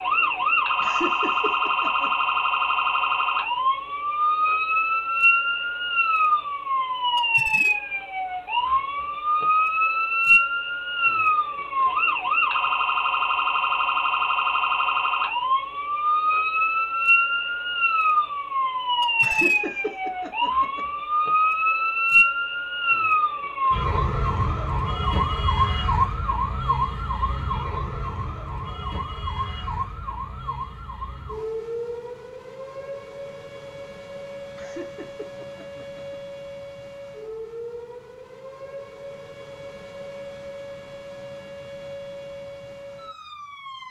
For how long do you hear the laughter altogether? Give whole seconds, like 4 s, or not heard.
5 s.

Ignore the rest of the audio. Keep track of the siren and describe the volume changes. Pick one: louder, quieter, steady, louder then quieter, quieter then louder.
quieter.